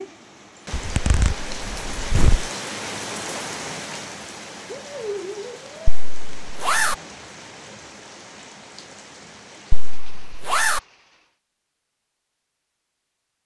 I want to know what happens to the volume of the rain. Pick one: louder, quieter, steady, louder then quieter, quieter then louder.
quieter.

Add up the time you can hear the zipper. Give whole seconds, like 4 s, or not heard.
4 s.